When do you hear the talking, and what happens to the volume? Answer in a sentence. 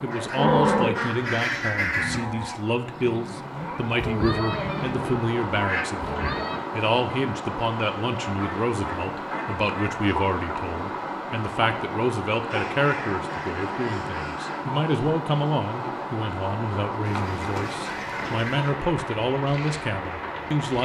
You can hear the talking from 0.0 to 20.8 s, at a steady volume.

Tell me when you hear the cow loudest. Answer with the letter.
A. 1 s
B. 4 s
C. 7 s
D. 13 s
A.